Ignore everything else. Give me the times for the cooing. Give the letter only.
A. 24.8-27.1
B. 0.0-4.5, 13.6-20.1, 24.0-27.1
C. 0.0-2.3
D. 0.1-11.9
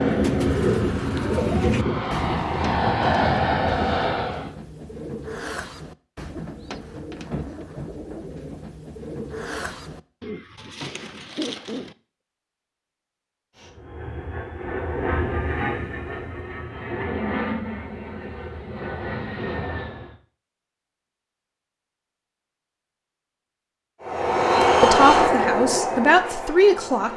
D.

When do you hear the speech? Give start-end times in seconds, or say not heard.
24.8-27.1.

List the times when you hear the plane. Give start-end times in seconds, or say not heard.
0.0-4.5, 13.6-20.1, 24.0-27.1.